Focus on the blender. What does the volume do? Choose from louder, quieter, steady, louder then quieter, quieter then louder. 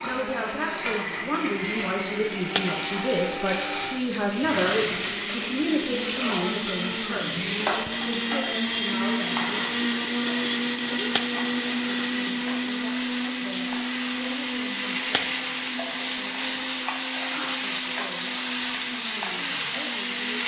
louder then quieter.